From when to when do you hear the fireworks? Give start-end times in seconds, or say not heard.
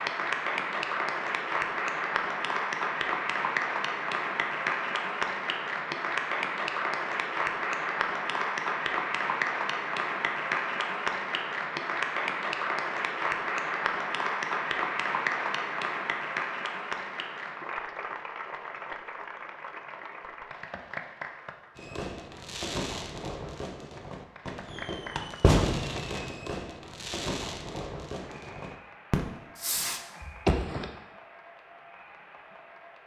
21.8-30.9.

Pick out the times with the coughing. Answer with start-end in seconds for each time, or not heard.
not heard.